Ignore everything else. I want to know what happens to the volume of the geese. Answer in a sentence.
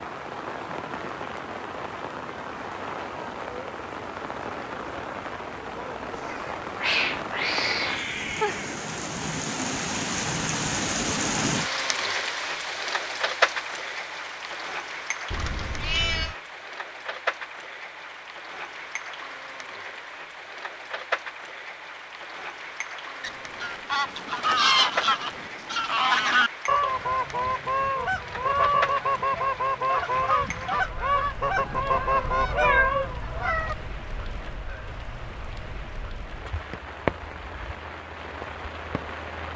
The volume of the geese stays about the same.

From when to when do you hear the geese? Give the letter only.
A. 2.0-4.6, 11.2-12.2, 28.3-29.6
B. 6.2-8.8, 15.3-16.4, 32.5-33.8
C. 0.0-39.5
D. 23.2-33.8
D.